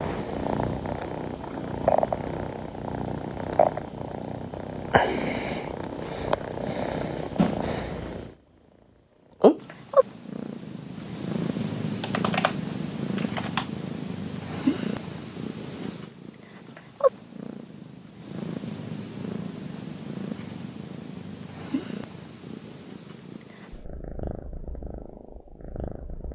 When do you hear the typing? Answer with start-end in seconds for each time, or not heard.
12.0-13.7.